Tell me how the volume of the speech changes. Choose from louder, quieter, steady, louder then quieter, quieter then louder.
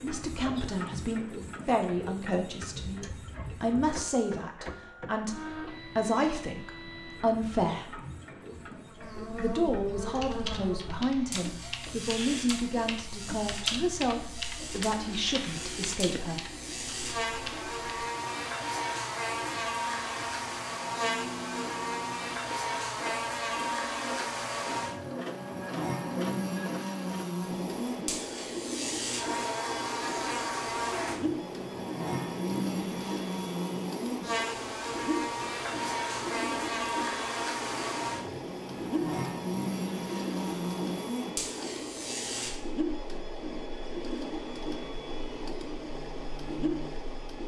steady.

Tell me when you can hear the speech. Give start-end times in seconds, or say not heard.
0.0-8.0, 9.3-16.4.